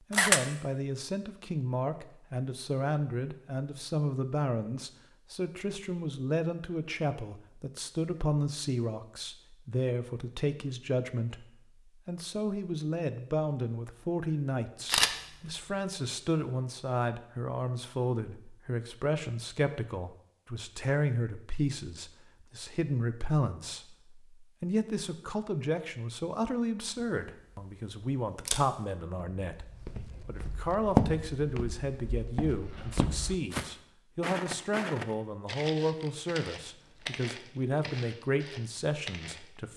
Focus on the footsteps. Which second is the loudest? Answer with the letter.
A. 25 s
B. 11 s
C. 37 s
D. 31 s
D.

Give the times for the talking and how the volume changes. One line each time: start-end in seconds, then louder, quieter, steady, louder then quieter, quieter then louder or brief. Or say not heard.
0.1-39.7 steady.